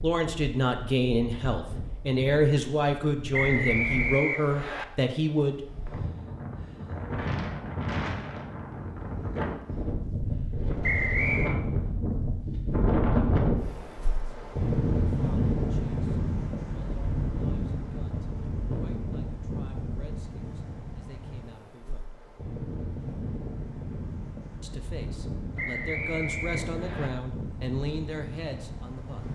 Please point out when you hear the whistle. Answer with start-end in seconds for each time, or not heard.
3.3-4.8, 10.8-11.6, 25.6-27.1.